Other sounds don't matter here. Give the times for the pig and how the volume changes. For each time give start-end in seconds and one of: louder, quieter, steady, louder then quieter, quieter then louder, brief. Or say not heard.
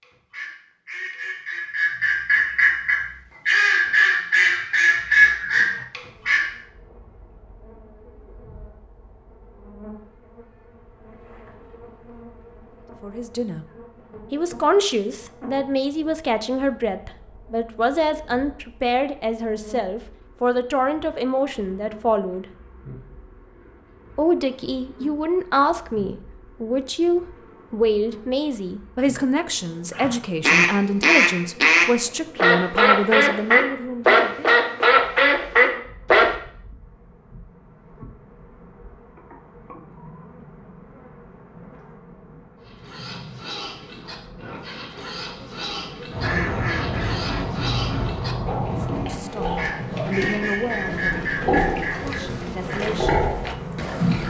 42.6-54.2 louder.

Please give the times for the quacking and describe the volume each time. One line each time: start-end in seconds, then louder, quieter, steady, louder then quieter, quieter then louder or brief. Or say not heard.
0.0-6.5 louder
29.9-36.3 steady
46.1-52.9 steady.